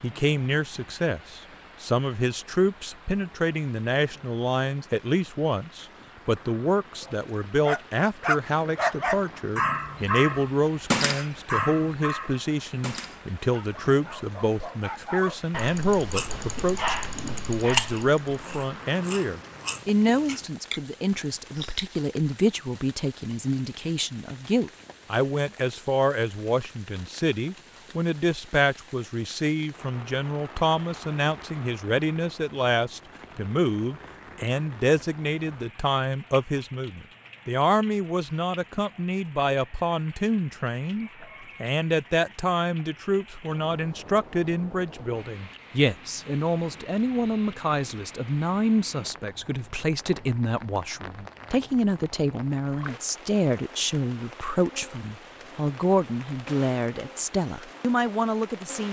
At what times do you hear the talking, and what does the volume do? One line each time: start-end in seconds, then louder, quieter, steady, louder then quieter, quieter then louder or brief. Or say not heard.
0.0-58.8 steady.